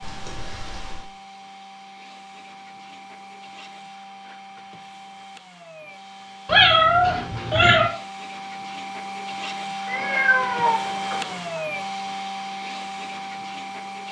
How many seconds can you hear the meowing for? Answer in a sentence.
You can hear the meowing for 4 seconds altogether.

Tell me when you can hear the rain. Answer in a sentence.
You can't hear the rain here.